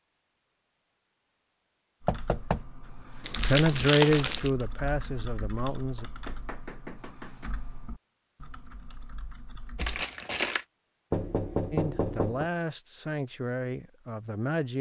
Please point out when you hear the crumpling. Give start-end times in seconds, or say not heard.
3.2-4.5, 9.8-10.7.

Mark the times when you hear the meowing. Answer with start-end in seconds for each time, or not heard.
not heard.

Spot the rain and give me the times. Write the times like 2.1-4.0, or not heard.
not heard.